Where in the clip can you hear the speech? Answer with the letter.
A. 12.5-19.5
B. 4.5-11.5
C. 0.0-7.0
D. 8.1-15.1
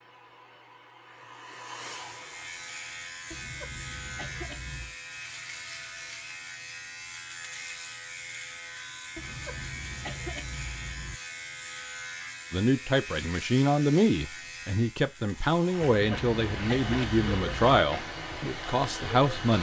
A.